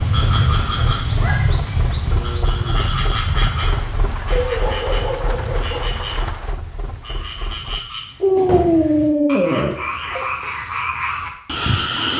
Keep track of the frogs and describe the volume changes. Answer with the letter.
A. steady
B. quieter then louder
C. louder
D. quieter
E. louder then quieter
B.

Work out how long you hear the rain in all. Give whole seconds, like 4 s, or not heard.
8 s.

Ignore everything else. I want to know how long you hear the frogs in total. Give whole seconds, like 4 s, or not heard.
12 s.